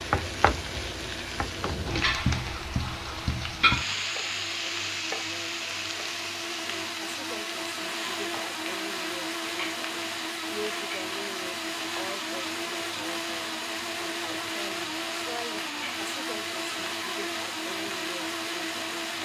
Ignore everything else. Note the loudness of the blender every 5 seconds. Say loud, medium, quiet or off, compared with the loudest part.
medium, loud, loud, loud.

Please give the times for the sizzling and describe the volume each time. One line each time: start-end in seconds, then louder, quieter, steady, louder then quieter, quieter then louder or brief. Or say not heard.
0.0-19.2 quieter.